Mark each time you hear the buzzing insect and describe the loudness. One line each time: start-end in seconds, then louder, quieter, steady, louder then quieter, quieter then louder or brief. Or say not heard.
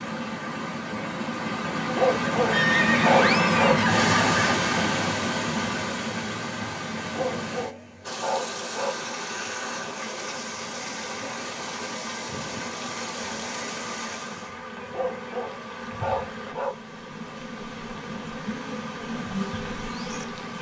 8.0-20.5 louder.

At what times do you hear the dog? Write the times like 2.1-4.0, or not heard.
1.9-3.8, 7.0-8.9, 14.8-16.7.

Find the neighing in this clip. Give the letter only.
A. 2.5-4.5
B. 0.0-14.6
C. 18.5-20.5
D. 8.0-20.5
A.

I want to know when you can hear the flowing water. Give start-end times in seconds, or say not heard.
0.0-14.6.